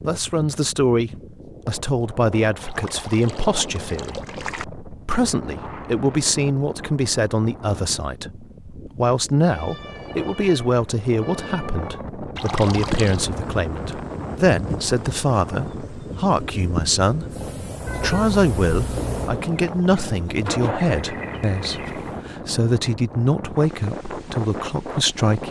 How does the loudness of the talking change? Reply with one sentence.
The volume of the talking stays about the same.